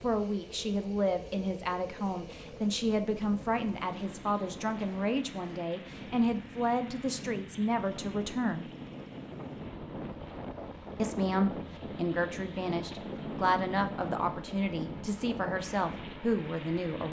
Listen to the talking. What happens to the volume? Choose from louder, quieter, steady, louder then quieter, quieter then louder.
steady.